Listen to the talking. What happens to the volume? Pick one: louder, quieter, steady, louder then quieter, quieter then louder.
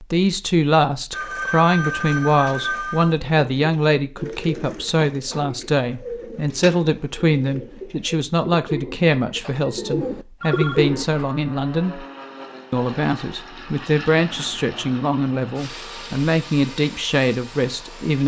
steady.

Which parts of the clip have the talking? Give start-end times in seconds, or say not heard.
0.0-12.0, 12.7-18.2.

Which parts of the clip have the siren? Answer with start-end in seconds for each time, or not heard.
not heard.